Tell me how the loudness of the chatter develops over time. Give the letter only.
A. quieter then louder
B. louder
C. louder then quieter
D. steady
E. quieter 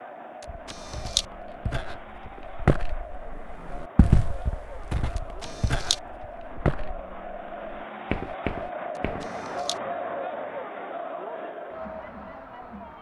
B.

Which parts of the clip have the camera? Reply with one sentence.
The camera can be heard from 0.4 to 1.2 s, from 5.2 to 6.0 s and from 8.9 to 9.8 s.